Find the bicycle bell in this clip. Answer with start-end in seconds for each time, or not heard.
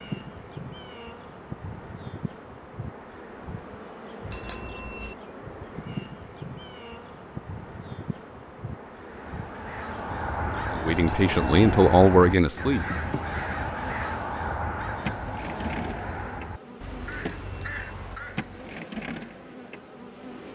4.3-5.2, 10.9-11.7, 17.1-17.9.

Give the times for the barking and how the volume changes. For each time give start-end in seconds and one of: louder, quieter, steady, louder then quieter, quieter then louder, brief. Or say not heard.
not heard.